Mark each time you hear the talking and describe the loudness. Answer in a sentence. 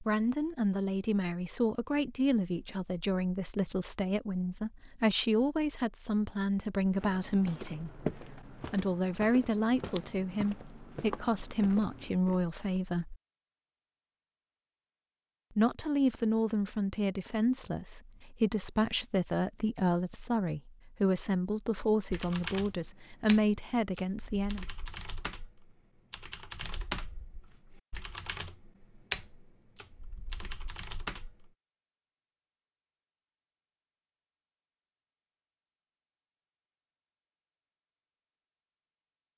You can hear the talking from 0.0 to 13.2 s, at a steady volume; and from 15.6 to 24.6 s, at a steady volume.